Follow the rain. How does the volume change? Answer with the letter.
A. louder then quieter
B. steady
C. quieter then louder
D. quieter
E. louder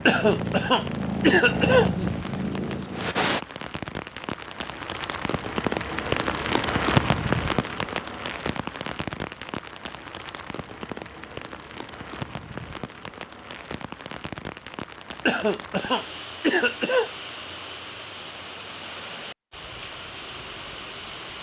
A.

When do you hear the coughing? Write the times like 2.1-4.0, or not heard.
0.1-2.1, 15.2-17.1.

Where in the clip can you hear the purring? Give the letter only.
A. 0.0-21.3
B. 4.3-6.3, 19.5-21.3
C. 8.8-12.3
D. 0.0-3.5
D.